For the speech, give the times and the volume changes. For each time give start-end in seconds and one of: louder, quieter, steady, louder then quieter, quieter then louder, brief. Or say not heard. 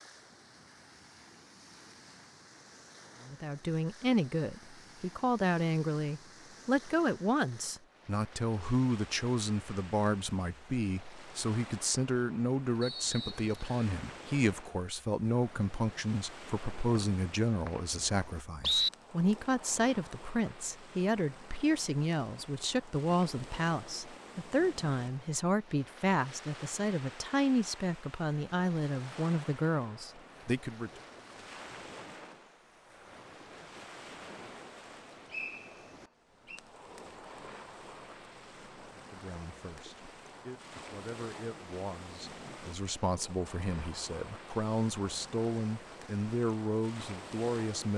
3.2-30.9 steady
39.0-47.9 louder.